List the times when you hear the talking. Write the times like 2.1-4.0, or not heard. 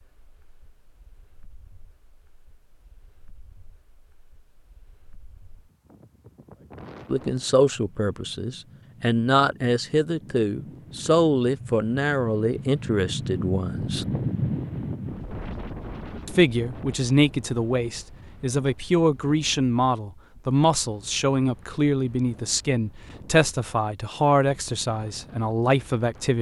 7.1-14.1, 16.2-26.3.